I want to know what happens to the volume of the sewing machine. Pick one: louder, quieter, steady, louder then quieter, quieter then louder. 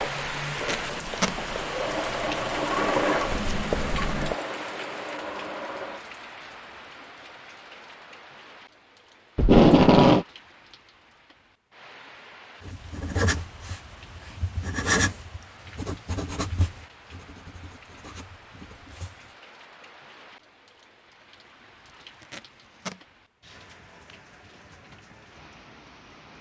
louder then quieter.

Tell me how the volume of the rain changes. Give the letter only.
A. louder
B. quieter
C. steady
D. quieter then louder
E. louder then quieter
B.